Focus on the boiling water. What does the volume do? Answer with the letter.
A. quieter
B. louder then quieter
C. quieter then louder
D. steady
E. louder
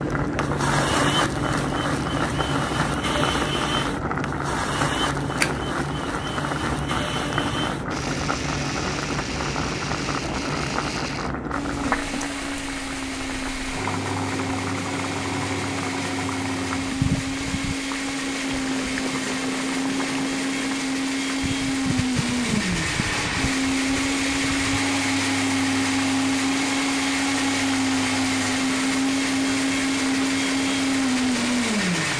A.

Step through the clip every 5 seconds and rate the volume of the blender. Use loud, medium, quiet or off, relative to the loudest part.
medium, medium, medium, medium, loud, loud, loud.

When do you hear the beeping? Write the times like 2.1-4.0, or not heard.
not heard.